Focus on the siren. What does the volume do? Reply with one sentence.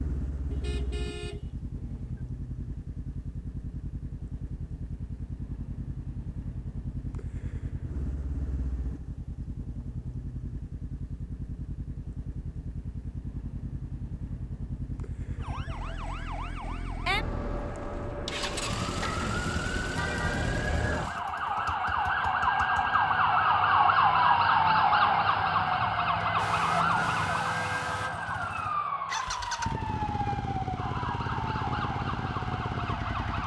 The volume of the siren goes up, then down.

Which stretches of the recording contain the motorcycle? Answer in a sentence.
The motorcycle can be heard from 0.0 to 33.4 s.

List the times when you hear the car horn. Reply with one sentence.
You can hear the car horn from 0.5 to 2.2 s, from 18.8 to 20.6 s and from 26.2 to 28.2 s.